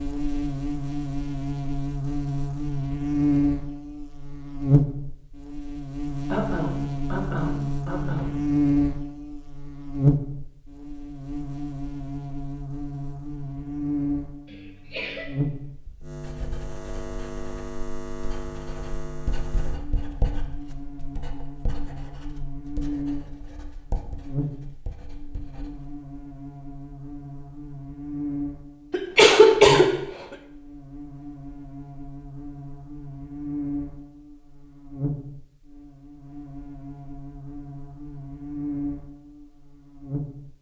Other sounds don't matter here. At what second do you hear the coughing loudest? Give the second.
30 s.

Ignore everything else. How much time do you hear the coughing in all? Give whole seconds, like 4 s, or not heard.
4 s.